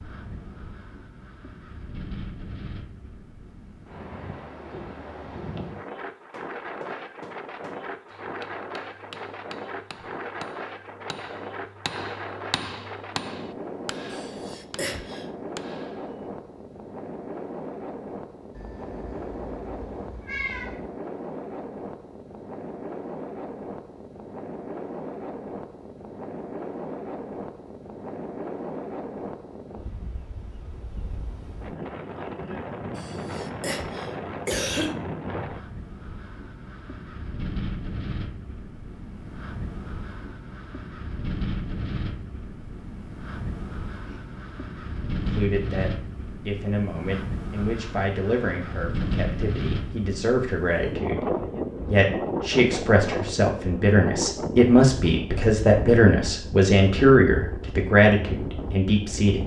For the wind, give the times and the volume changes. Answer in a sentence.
You can hear the wind from 0.0 to 59.4 s, getting louder.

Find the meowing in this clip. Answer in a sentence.
The meowing can be heard from 18.6 to 20.9 s.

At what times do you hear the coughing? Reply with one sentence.
The coughing can be heard from 14.1 to 15.2 s and from 33.0 to 35.0 s.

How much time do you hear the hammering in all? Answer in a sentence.
You can hear the hammering for 10 seconds altogether.